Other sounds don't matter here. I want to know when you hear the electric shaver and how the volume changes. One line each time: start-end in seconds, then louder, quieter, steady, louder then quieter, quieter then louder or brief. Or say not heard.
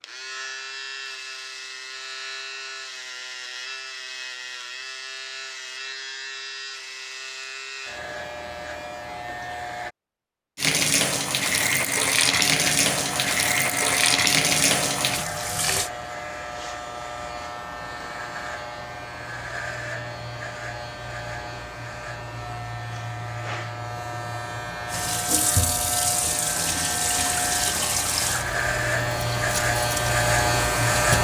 0.0-9.9 steady
12.4-31.1 louder.